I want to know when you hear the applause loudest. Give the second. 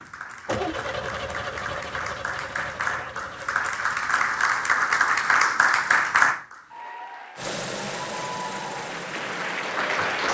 6 s.